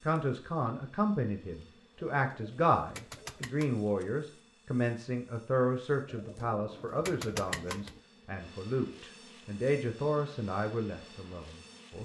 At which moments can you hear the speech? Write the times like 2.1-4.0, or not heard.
0.1-11.9.